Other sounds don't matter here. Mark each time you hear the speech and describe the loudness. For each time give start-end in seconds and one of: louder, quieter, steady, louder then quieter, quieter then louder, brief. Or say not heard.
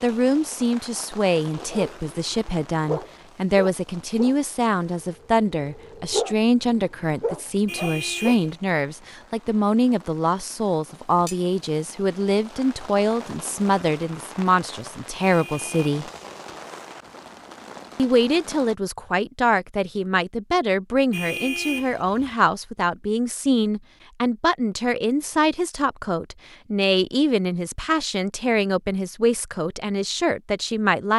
0.0-16.1 steady
17.9-31.1 steady.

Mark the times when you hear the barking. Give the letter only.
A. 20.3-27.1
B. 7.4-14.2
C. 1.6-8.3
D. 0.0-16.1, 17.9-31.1
C.